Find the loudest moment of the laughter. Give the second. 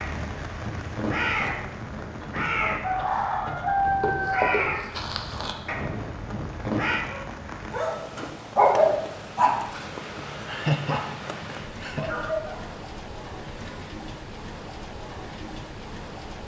11 s.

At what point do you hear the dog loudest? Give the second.
9 s.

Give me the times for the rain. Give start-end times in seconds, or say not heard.
0.0-16.4.